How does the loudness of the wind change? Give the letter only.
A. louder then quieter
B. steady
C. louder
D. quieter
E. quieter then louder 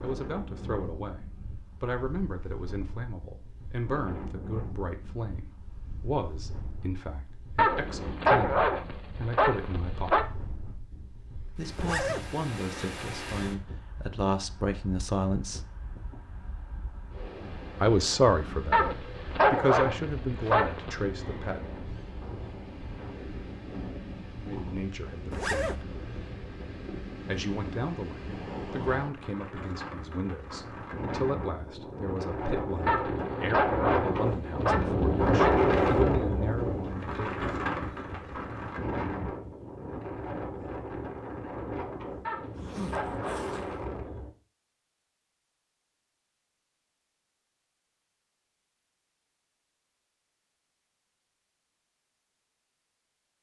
C.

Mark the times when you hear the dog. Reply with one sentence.
You can hear the dog from 7.5 to 10.2 s, from 18.7 to 20.9 s, from 32.9 to 35.6 s and from 42.2 to 43.5 s.